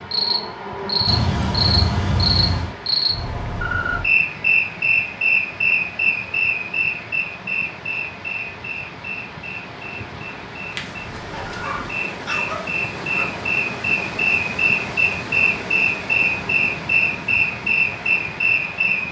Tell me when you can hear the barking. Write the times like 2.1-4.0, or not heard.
1.1-2.8, 10.8-13.2.